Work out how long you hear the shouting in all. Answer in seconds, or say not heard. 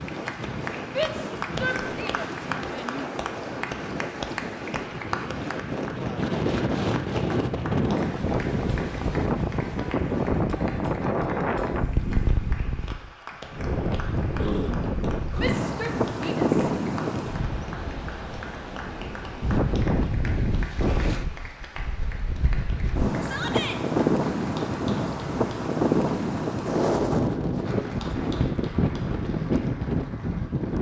4 s.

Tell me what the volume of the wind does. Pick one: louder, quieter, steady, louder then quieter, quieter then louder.
louder.